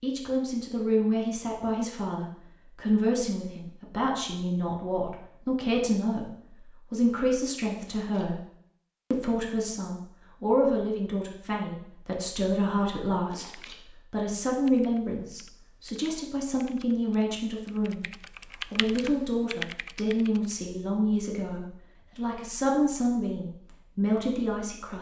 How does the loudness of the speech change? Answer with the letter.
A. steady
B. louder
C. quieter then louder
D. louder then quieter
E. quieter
A.